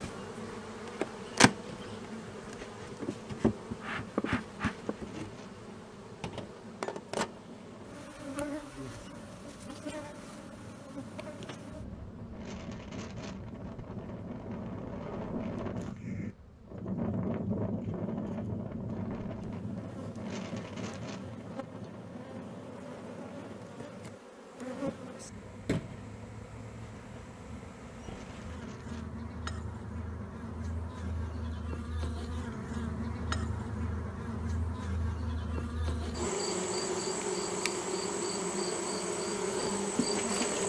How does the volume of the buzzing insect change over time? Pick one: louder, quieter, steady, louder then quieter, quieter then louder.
quieter then louder.